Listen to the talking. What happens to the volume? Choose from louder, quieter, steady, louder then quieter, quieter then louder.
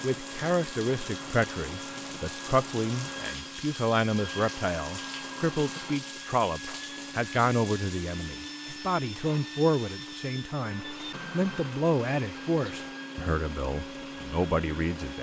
steady.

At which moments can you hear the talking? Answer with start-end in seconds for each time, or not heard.
0.0-15.1.